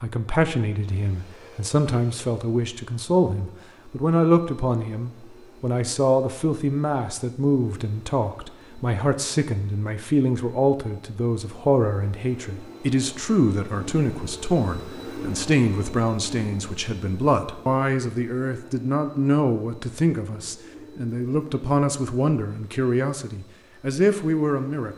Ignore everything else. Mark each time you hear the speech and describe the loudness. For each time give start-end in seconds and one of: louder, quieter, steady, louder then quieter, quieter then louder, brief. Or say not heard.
0.0-24.9 steady.